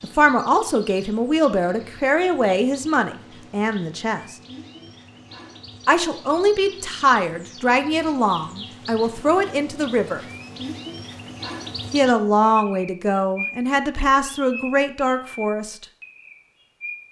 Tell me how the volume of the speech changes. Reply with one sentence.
The volume of the speech stays about the same.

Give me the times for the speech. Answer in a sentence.
The speech can be heard from 0.0 to 4.3 s, from 5.8 to 10.2 s and from 11.9 to 15.8 s.